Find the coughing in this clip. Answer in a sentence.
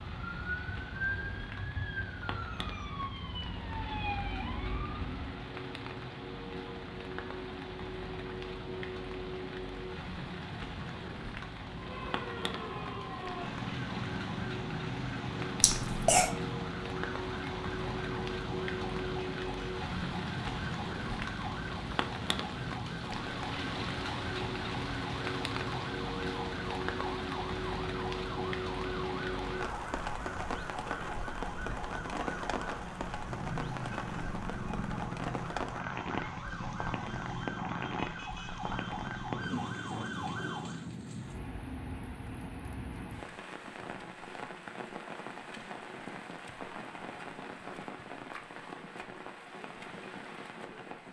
You can hear the coughing from 15.6 to 16.3 s.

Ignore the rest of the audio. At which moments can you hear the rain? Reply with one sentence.
You can hear the rain from 0.0 to 51.0 s.